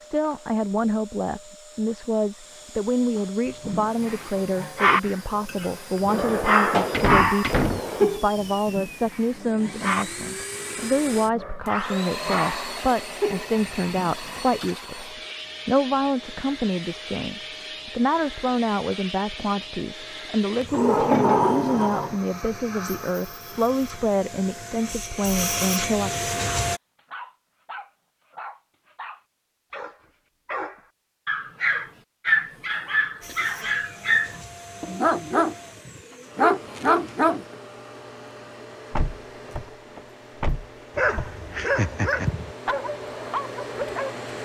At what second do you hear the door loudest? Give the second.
21 s.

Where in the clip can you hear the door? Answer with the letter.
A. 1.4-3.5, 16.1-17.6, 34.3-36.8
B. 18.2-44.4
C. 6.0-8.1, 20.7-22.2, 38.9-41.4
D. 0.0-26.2
C.